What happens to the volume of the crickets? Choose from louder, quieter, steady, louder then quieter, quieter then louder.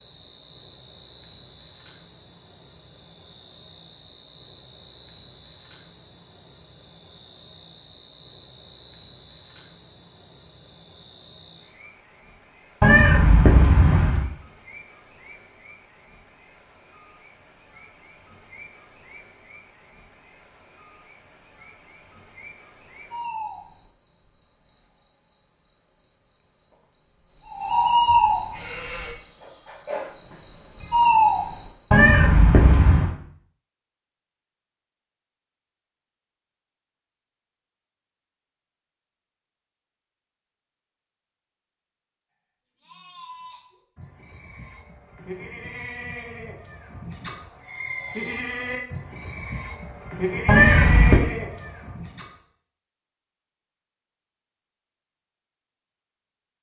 louder.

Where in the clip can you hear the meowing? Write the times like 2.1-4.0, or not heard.
12.8-14.3, 31.9-33.1, 50.5-51.2.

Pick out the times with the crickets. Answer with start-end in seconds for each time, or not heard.
0.0-31.7.